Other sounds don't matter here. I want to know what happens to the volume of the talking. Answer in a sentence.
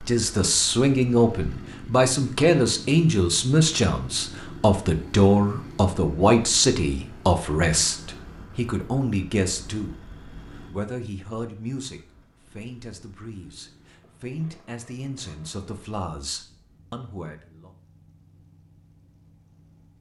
The loudness of the talking goes down.